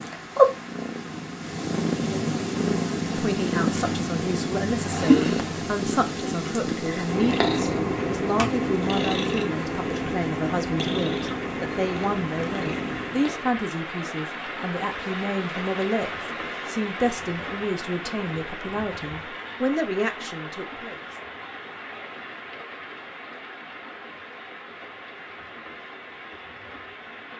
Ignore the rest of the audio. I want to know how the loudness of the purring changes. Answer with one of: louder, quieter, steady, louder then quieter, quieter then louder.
quieter.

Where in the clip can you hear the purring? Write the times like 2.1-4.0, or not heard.
0.0-13.6.